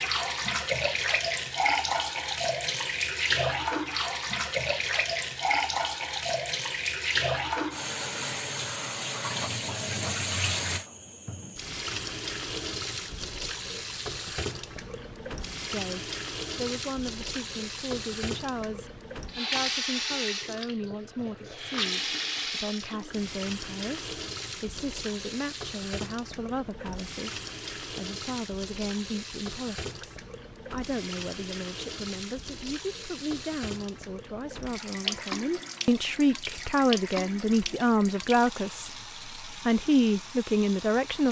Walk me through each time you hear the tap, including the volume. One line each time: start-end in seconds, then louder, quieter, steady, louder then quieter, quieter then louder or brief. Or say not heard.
0.0-41.2 quieter.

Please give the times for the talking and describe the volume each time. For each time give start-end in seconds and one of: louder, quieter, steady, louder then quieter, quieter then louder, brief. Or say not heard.
15.7-41.2 louder.